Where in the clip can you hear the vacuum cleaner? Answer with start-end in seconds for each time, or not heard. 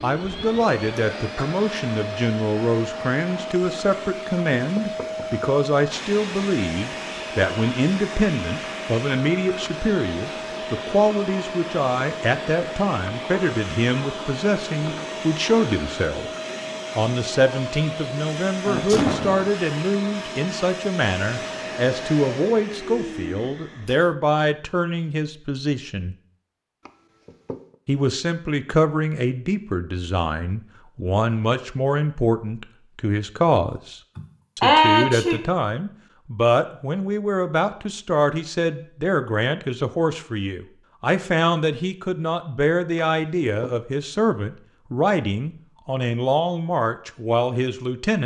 0.0-24.1.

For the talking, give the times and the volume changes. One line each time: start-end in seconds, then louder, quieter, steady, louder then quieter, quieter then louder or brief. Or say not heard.
0.0-16.3 steady
16.9-26.1 steady
27.9-48.2 steady.